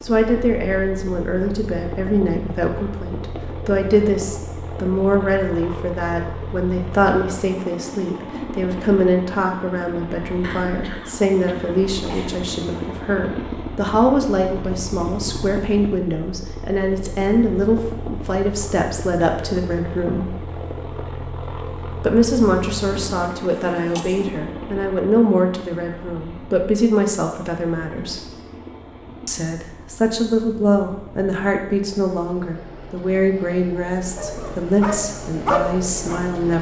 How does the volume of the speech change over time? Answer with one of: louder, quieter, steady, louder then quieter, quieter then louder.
steady.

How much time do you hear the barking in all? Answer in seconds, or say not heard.
2 s.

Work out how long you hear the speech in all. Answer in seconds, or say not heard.
34 s.